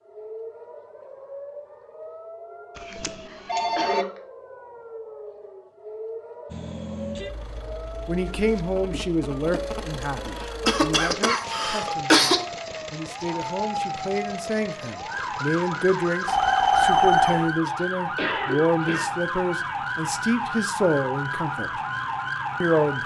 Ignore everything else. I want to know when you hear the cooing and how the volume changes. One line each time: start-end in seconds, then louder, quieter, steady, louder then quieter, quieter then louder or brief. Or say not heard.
not heard.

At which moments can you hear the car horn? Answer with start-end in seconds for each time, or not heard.
not heard.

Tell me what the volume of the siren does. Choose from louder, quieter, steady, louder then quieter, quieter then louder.
louder.